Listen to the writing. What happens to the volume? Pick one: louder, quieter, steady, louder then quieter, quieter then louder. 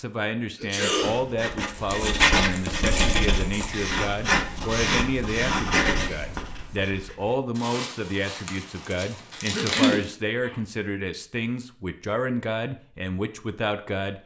quieter.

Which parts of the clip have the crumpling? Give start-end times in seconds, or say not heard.
1.7-3.7, 7.5-10.1.